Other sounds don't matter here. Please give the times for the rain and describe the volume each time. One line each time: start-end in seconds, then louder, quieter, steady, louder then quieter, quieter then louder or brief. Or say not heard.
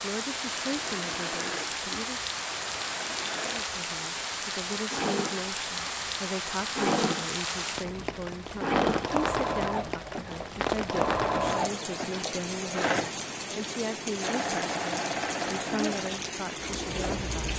0.0-17.5 steady.